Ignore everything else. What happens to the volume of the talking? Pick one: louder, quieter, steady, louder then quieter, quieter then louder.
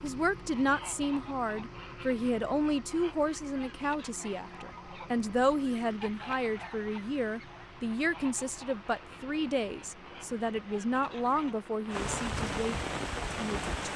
steady.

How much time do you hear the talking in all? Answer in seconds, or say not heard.
14 s.